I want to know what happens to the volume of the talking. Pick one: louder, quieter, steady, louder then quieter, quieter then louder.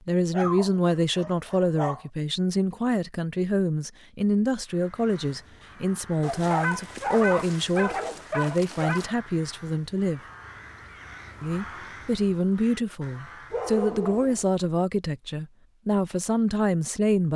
steady.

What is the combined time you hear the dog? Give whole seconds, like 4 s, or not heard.
6 s.